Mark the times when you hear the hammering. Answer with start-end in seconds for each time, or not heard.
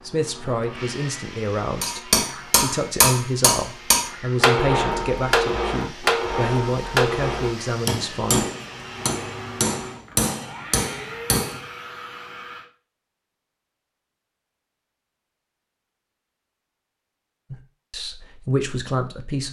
1.8-11.6.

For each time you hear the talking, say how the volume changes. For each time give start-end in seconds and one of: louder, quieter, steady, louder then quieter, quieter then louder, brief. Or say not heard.
0.1-8.5 steady
17.5-19.4 brief.